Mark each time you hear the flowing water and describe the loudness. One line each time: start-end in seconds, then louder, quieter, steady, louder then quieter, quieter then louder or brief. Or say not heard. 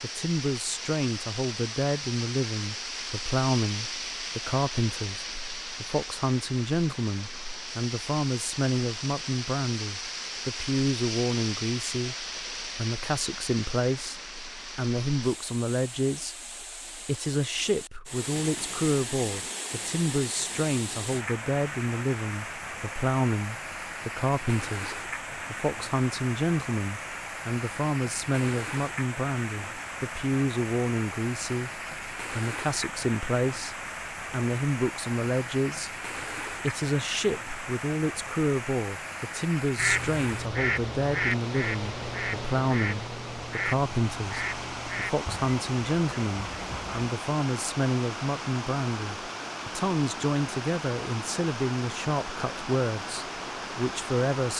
0.0-54.5 steady.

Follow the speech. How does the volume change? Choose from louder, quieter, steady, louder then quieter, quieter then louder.
steady.